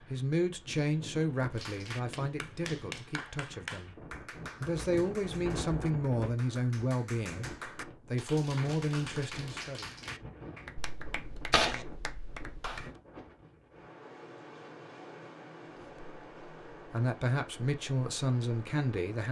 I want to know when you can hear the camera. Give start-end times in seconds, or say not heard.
10.8-12.8.